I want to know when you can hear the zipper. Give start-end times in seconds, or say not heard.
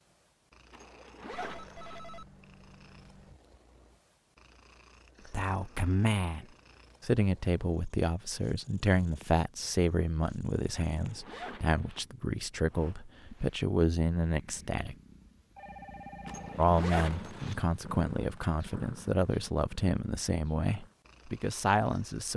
0.7-2.0, 10.9-12.1, 16.2-17.6.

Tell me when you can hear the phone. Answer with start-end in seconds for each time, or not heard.
1.3-3.4, 15.6-16.6.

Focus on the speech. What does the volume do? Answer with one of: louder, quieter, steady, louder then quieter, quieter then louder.
steady.